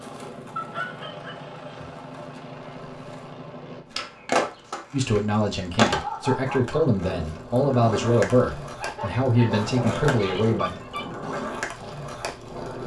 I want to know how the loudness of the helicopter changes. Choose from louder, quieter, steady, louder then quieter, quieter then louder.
steady.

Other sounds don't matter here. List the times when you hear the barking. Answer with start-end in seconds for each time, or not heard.
0.6-1.9, 5.8-6.9, 8.8-11.1.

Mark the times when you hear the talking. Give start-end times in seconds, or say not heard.
4.9-10.7.